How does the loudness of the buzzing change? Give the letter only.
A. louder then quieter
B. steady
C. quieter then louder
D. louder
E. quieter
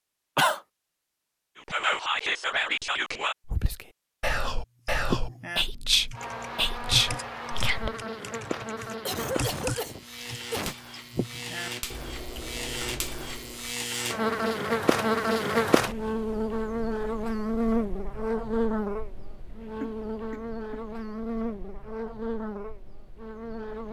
A.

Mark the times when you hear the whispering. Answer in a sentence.
The whispering can be heard from 1.6 to 8.0 s.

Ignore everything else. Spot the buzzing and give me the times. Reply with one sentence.
The buzzing can be heard from 6.1 to 23.8 s.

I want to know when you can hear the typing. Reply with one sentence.
The typing can be heard from 4.8 to 13.8 s.